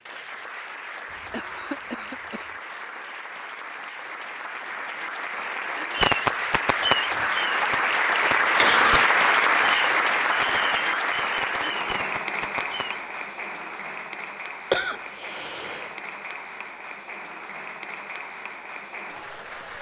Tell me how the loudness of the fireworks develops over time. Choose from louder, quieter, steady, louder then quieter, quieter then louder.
quieter.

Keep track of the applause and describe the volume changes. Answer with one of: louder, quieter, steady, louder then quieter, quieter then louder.
louder then quieter.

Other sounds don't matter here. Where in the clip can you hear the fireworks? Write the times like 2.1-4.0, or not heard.
5.9-13.0.